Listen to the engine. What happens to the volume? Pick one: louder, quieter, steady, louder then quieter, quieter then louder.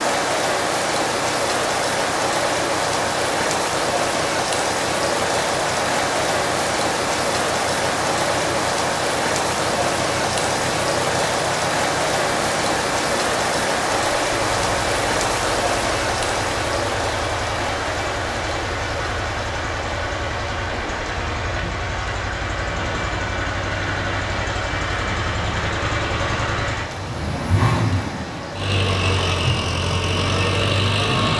louder.